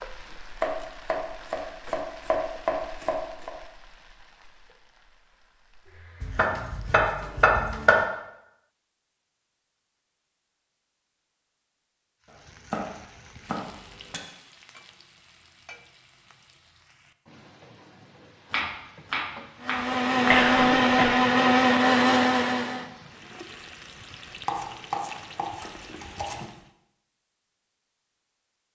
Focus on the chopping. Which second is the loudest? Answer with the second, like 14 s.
8 s.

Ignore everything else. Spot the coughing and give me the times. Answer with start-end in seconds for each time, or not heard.
20.3-21.1.